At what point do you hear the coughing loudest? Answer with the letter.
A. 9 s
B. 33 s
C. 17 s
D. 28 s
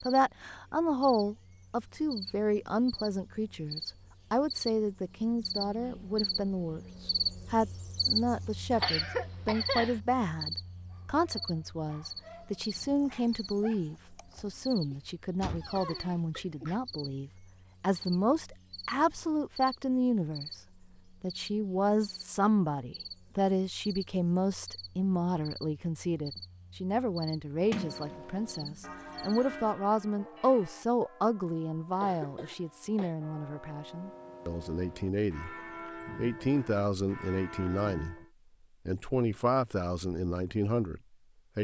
A.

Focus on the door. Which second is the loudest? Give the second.
28 s.